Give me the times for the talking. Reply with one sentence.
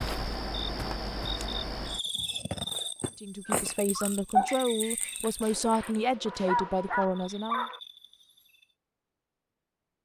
The talking can be heard from 3.1 to 7.7 s.